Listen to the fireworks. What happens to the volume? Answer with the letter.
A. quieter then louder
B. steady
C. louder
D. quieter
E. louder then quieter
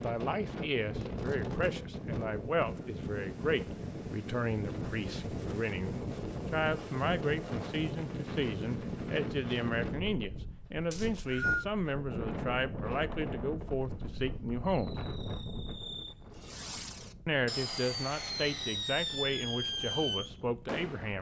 C.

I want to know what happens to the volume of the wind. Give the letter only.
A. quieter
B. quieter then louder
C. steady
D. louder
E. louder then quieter
A.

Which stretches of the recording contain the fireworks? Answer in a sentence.
You can hear the fireworks from 14.7 to 21.1 s.